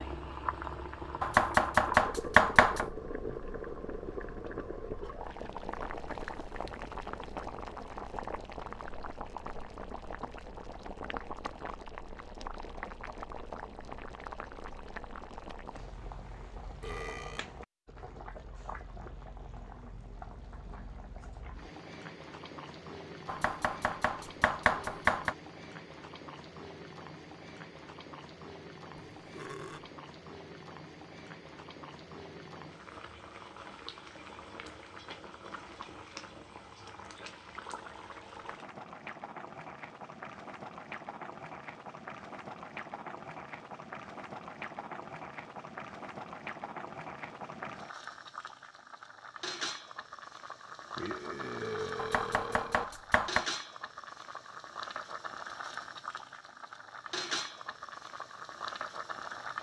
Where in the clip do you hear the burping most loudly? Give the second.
52 s.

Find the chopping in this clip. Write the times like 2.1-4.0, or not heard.
1.2-2.9, 23.2-25.4, 52.0-53.5.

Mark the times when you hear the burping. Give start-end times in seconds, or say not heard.
16.8-17.4, 28.9-29.9, 51.0-52.9.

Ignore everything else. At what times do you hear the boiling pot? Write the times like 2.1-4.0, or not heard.
0.0-59.5.